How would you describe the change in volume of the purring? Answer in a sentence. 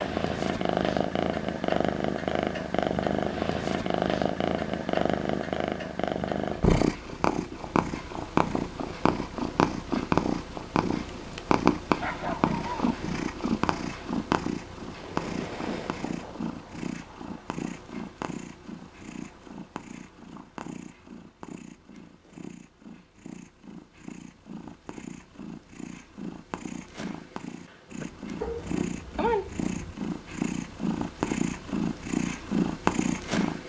The loudness of the purring goes down, then up.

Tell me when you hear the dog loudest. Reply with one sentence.
The volume of the dog peaks at 29 seconds.